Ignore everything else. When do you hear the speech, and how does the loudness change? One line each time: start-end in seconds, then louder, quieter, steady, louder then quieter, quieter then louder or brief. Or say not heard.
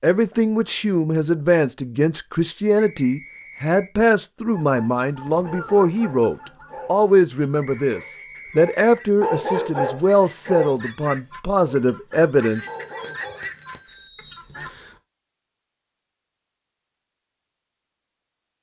0.0-12.6 steady.